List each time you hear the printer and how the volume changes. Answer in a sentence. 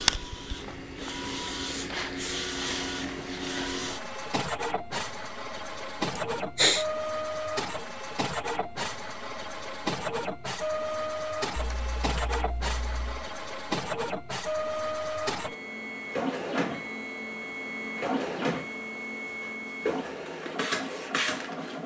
You can hear the printer from 0.0 to 21.8 s, at a steady volume.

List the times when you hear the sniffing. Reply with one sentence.
You can hear the sniffing from 6.2 to 6.8 s.